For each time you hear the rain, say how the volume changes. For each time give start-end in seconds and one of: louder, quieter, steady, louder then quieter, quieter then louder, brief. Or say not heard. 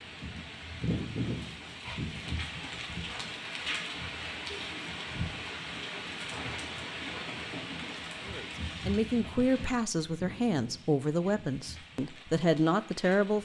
0.0-13.4 quieter.